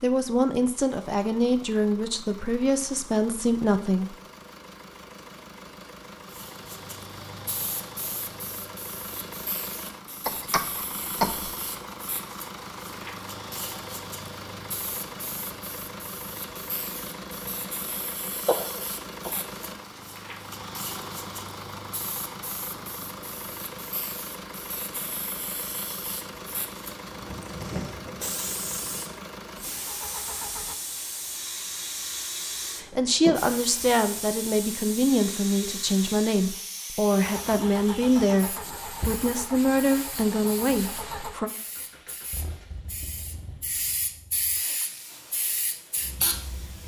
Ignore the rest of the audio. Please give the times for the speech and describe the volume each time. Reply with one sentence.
You can hear the speech from 0.0 to 4.2 s, at a steady volume; and from 32.8 to 41.5 s, at a steady volume.